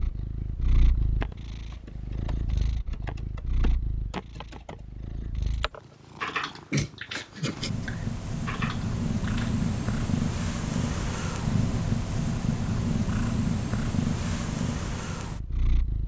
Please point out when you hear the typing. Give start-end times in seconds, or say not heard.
0.9-9.7.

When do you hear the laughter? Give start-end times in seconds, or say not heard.
not heard.